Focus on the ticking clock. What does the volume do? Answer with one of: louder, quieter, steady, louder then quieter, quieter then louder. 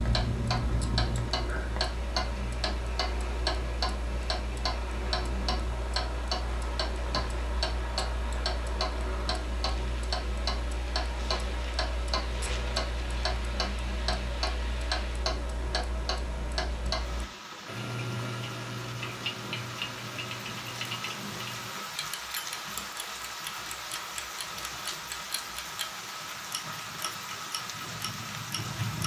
quieter.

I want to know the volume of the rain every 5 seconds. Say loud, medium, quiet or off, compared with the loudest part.
medium, medium, medium, medium, loud, loud.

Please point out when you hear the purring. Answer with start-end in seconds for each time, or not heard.
0.0-2.5.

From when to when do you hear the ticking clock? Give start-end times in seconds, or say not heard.
0.0-29.0.